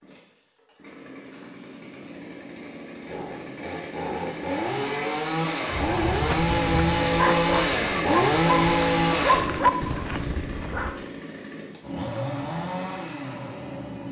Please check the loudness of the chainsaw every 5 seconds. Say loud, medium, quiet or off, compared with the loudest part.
medium, loud, medium.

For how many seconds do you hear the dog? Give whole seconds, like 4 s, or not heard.
5 s.